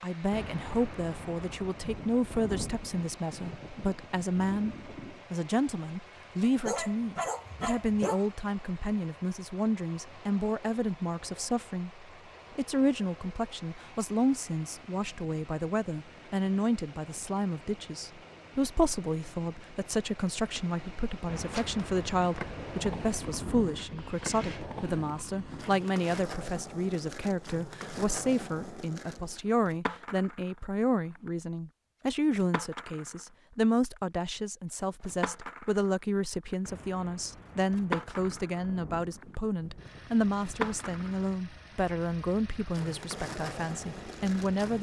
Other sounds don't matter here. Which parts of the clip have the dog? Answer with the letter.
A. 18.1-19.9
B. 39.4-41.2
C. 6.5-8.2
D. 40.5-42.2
C.